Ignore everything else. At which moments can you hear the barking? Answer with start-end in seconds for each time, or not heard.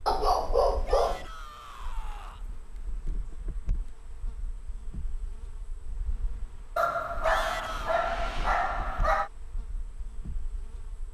0.1-1.2, 6.8-9.3.